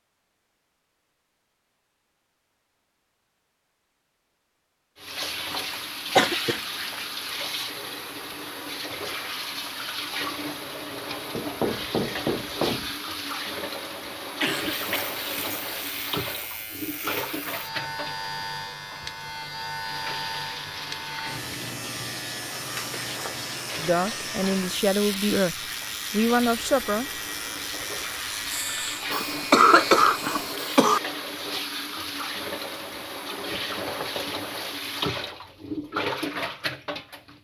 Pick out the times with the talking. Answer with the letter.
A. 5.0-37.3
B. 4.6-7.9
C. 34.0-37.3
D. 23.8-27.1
D.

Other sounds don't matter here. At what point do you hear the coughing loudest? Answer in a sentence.
The loudest moment of the coughing is at 30 seconds.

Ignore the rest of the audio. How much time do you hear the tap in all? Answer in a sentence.
The tap can be heard for 32 seconds in total.